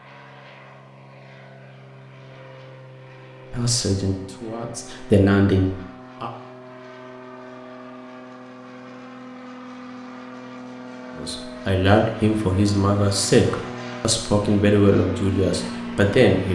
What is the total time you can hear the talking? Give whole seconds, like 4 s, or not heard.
8 s.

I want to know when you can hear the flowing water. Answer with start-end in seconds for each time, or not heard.
not heard.